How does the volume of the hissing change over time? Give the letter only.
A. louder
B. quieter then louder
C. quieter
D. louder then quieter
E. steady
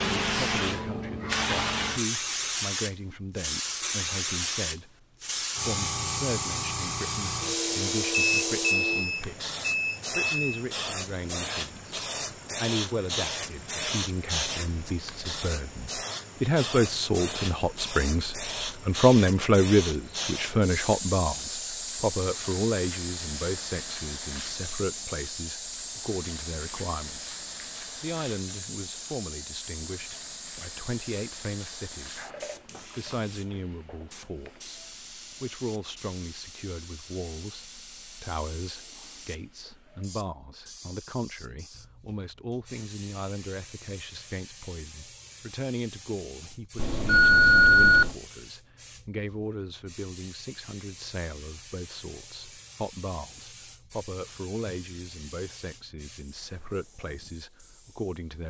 C.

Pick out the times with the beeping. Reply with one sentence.
The beeping can be heard from 8.1 to 10.6 s and from 46.8 to 48.1 s.